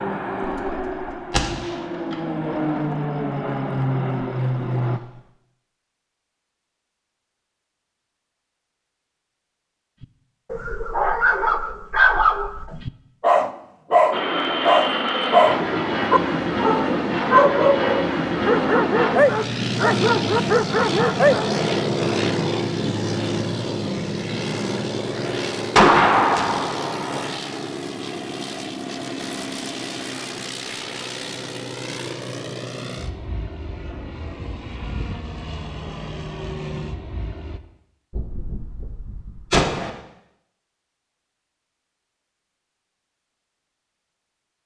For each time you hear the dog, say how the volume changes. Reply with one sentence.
You can hear the dog from 10.5 to 21.5 s, at a steady volume.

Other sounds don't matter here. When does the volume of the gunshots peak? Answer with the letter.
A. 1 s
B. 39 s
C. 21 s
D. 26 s
D.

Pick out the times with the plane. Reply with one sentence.
The plane can be heard from 0.0 to 5.0 s and from 14.1 to 37.6 s.